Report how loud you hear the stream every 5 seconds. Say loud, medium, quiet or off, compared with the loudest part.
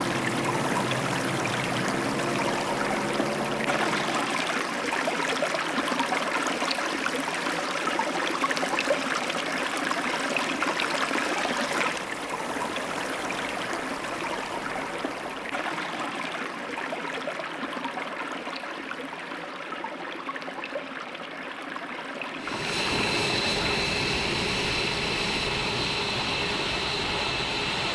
loud, loud, loud, medium, medium, medium.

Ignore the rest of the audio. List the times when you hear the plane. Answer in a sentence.
You can hear the plane from 0.0 to 4.5 s and from 22.4 to 27.9 s.